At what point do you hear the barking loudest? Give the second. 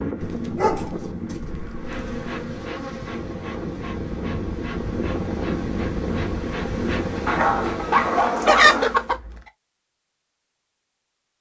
8 s.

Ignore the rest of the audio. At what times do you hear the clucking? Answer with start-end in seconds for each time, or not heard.
7.5-9.4.